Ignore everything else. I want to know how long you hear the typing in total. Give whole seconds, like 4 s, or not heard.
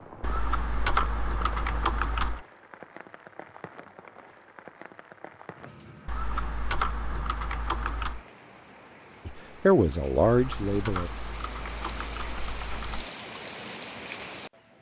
7 s.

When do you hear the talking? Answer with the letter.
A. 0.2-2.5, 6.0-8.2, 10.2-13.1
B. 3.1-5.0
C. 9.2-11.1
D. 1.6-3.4
C.